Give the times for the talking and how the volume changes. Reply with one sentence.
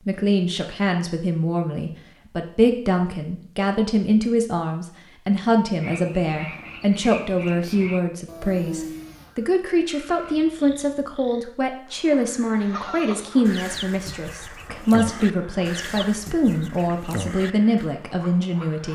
You can hear the talking from 0.1 to 18.8 s, at a steady volume.